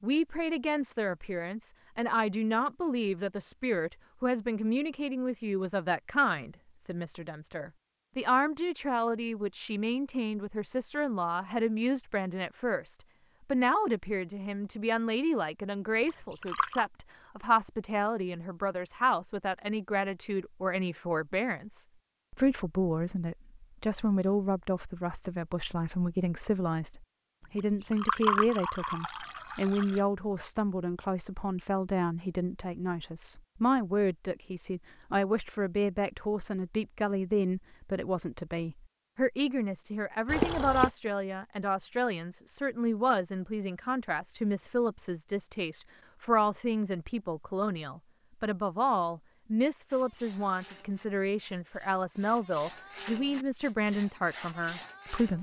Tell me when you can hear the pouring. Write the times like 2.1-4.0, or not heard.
16.1-16.9, 27.6-30.0, 40.2-40.9.